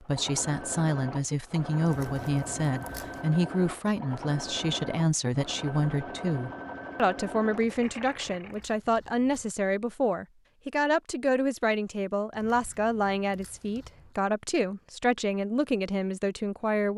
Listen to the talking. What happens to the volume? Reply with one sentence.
The loudness of the talking stays about the same.